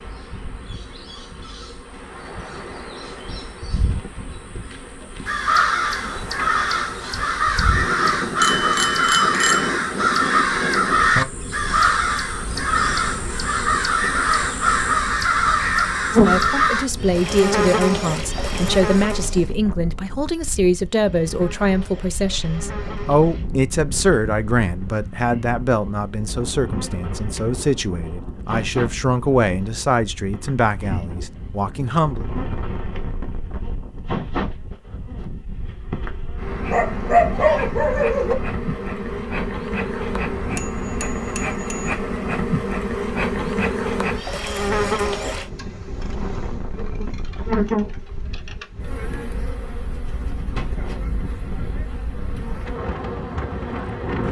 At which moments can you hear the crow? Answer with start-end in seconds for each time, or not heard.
5.2-16.9.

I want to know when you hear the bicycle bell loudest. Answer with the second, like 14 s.
9 s.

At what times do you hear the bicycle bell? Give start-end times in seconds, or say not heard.
8.3-9.7, 40.5-42.0.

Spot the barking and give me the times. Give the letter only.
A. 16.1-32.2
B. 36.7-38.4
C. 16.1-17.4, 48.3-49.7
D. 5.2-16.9
B.